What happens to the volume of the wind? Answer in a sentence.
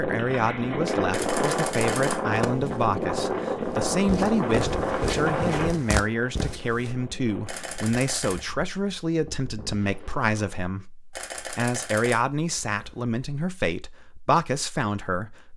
The loudness of the wind goes down.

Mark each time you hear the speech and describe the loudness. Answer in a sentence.
You can hear the speech from 0.0 to 15.5 s, at a steady volume.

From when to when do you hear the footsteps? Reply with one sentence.
You can hear the footsteps from 2.3 to 7.0 s.